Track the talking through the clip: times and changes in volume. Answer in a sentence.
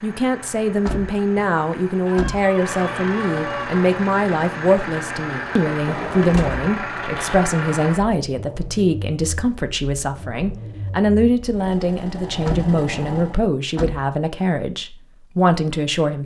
You can hear the talking from 0.0 to 16.2 s, at a steady volume.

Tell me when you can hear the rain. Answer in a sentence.
You can't hear the rain here.